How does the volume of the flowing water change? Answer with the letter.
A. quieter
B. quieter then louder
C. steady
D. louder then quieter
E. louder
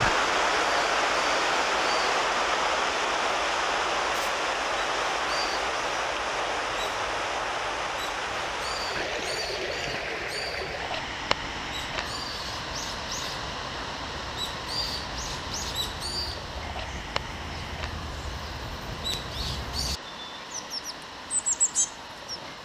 A.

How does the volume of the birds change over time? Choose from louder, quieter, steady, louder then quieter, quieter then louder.
louder.